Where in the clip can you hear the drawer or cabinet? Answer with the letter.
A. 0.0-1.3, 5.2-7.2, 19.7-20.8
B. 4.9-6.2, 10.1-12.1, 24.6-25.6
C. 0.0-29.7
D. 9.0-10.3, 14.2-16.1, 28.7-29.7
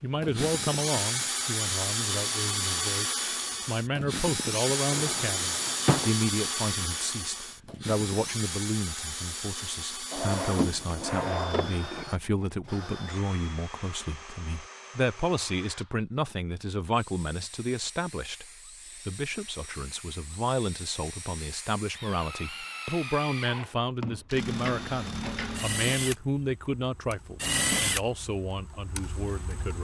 B.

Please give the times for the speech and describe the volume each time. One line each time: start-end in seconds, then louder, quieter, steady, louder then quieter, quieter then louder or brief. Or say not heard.
0.0-29.7 steady.